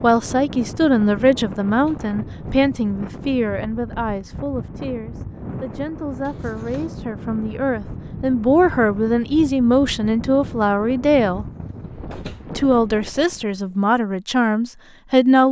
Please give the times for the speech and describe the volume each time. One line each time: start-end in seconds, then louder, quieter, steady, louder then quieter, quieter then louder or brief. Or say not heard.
0.0-11.4 quieter then louder
12.6-15.4 brief.